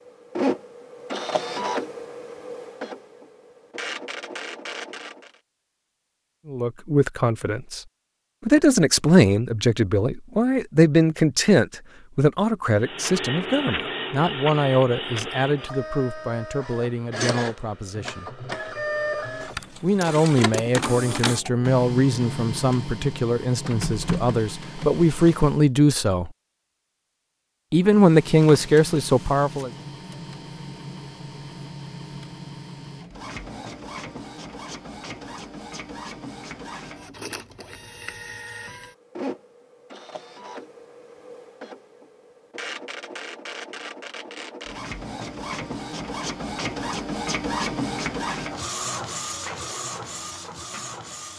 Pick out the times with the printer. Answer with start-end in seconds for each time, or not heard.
0.0-5.4, 12.8-25.6, 27.8-51.3.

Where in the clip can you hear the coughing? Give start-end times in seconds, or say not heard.
not heard.